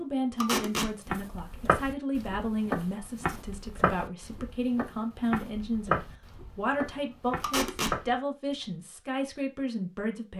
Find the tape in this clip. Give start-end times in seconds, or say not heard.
0.4-0.9, 7.4-8.0.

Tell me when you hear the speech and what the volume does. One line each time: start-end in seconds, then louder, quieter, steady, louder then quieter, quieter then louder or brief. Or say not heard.
0.0-10.3 steady.